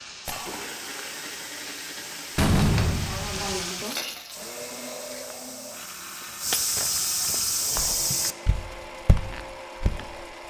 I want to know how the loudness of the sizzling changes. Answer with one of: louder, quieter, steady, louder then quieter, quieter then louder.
louder.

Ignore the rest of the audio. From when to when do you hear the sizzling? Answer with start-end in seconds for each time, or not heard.
0.0-4.4.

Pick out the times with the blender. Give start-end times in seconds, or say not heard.
0.0-10.4.